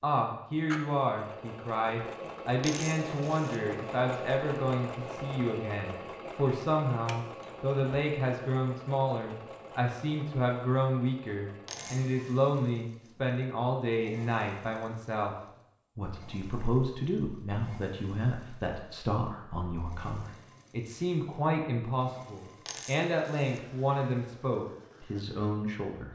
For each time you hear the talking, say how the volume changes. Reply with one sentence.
The talking can be heard from 0.0 to 15.3 s, at a steady volume; and from 15.9 to 26.0 s, at a steady volume.